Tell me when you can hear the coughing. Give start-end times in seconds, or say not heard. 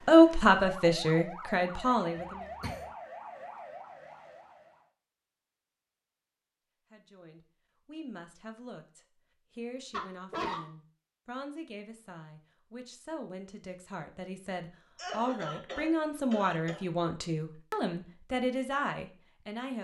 2.1-2.9, 9.9-10.6, 14.9-16.9.